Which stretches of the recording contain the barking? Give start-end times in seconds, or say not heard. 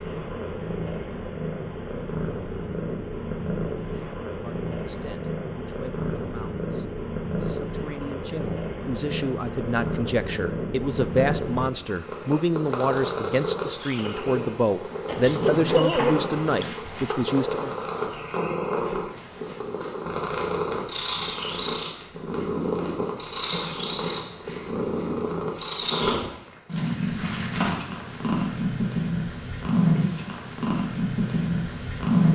15.1-16.8.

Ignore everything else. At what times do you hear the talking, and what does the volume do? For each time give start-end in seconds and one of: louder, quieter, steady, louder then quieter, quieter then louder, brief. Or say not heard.
4.0-17.8 louder.